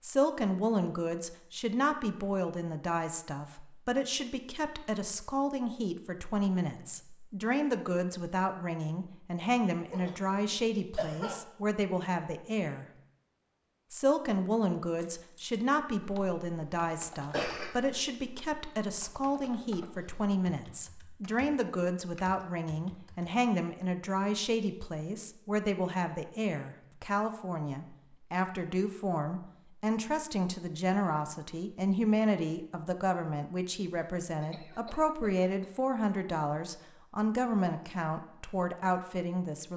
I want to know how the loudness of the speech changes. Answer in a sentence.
The volume of the speech stays about the same.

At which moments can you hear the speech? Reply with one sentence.
The speech can be heard from 0.0 to 12.8 s and from 13.9 to 39.7 s.